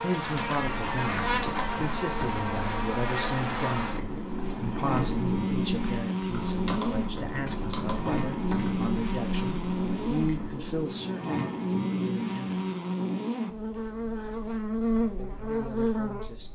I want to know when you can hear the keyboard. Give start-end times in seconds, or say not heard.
0.1-10.9.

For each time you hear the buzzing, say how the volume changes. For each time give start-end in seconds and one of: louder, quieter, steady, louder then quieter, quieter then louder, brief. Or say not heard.
0.0-16.4 steady.